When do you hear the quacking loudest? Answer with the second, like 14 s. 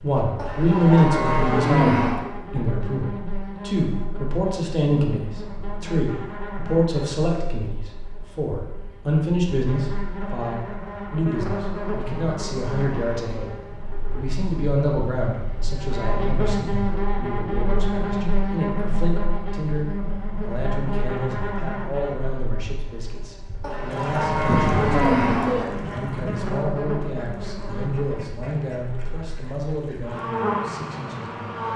25 s.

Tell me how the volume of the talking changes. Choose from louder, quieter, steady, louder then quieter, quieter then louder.
quieter.